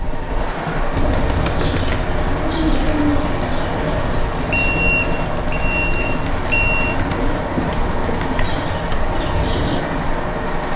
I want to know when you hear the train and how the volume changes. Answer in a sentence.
The train can be heard from 0.0 to 10.7 s, at a steady volume.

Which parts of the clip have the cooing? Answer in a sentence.
You can hear the cooing from 0.9 to 9.8 s.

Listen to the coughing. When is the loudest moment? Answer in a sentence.
The loudest moment of the coughing is at 3 seconds.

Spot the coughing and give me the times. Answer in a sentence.
The coughing can be heard from 2.2 to 3.1 s and from 7.5 to 8.2 s.